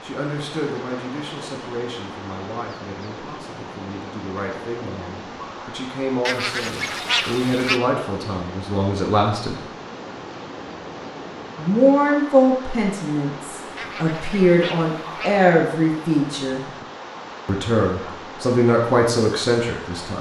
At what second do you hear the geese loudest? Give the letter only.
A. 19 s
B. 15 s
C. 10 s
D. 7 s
D.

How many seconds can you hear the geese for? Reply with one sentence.
The geese can be heard for 3 seconds in total.